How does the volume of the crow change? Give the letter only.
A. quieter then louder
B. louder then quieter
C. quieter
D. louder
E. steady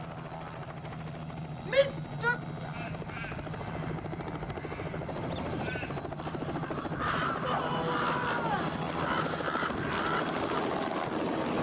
D.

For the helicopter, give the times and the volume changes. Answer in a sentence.
You can hear the helicopter from 0.0 to 11.5 s, getting louder.